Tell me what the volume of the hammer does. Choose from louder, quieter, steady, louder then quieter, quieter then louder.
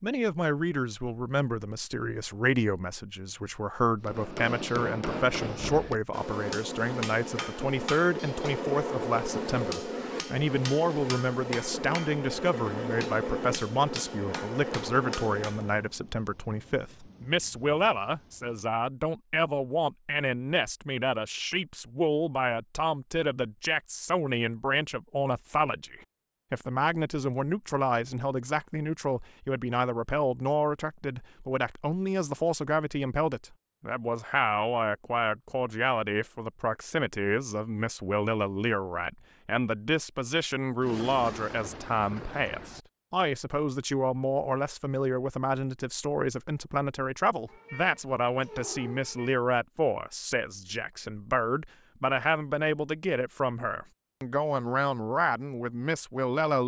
steady.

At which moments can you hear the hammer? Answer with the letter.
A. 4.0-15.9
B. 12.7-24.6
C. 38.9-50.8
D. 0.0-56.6
A.